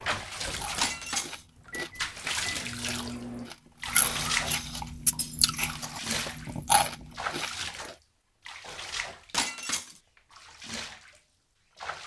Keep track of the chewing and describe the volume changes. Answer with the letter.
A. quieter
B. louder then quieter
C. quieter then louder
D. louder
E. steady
D.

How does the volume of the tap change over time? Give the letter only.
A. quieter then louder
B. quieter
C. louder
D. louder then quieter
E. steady
B.